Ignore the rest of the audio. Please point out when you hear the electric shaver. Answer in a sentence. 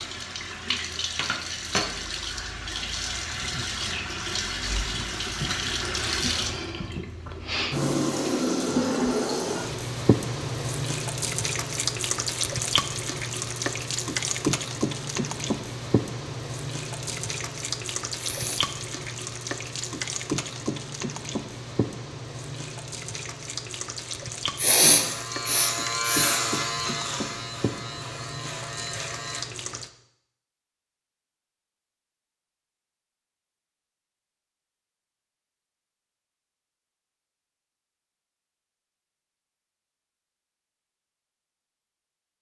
The electric shaver can be heard from 24.9 to 29.4 s.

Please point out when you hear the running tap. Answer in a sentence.
You can hear the running tap from 0.0 to 29.9 s.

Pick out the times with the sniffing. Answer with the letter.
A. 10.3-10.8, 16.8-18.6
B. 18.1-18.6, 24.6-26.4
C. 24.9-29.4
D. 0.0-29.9
B.